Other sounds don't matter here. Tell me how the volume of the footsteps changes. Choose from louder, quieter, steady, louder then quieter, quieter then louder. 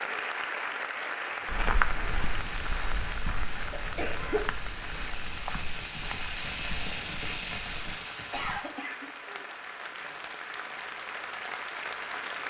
quieter.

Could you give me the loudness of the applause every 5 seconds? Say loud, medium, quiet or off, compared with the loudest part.
loud, medium, loud.